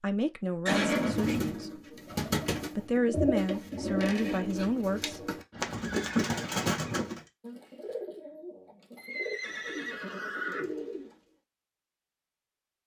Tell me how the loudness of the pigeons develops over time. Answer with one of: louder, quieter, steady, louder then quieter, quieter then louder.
quieter.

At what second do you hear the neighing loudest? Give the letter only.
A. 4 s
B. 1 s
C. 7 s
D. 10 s
B.